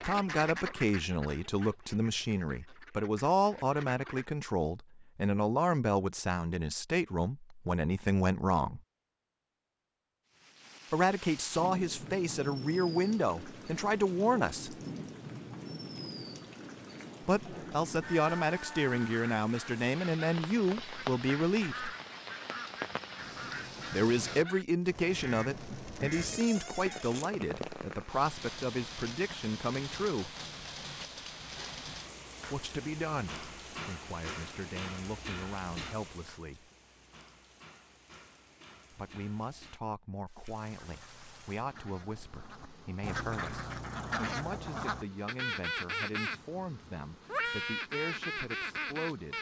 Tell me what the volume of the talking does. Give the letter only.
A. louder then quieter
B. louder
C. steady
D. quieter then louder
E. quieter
E.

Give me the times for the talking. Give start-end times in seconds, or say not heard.
0.1-8.8, 10.9-14.8, 17.2-21.9, 23.9-30.4, 32.5-36.6, 38.9-49.3.